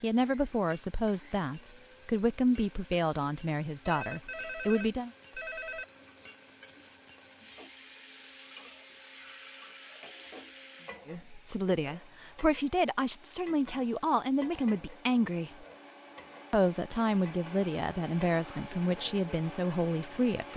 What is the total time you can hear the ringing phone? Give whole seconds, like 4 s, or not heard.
2 s.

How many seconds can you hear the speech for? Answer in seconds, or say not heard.
14 s.